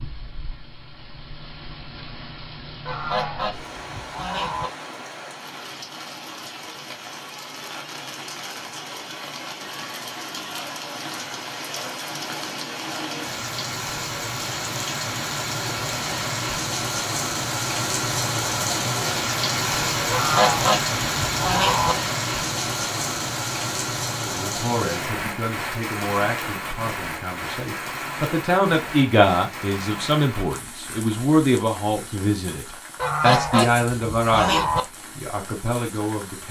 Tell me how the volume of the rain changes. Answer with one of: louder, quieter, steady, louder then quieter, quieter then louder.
louder then quieter.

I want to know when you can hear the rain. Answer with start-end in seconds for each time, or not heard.
0.0-36.4.